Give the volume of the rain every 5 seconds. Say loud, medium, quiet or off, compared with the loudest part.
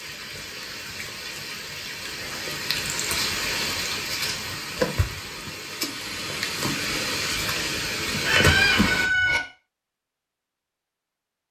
loud, loud, off.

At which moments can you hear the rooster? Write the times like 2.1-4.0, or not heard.
8.2-9.4.